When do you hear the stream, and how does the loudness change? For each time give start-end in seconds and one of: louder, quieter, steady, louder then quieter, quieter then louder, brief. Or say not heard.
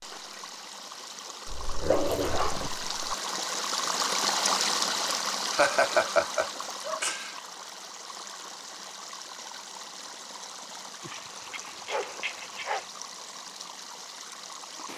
0.0-14.9 louder then quieter.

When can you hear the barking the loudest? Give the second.
2 s.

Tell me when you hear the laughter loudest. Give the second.
6 s.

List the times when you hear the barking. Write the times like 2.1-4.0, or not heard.
1.4-3.1, 11.0-12.9.